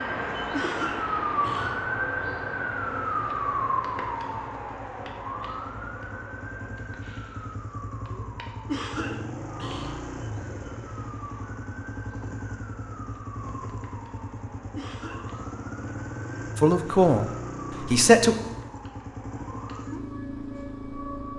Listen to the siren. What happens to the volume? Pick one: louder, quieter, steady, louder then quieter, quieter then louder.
quieter.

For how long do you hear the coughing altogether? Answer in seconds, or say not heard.
3 s.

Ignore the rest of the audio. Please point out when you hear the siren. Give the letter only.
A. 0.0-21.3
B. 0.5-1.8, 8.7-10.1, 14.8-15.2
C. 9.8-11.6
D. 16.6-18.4
A.